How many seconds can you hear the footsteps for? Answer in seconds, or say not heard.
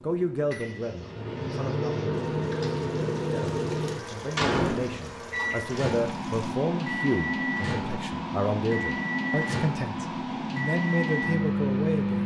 not heard.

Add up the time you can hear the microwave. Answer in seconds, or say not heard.
12 s.